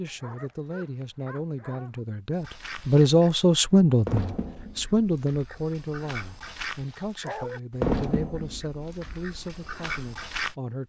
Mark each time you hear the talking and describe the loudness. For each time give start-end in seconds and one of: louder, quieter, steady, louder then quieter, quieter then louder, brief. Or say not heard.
0.0-10.8 louder then quieter.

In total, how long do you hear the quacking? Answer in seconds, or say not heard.
8 s.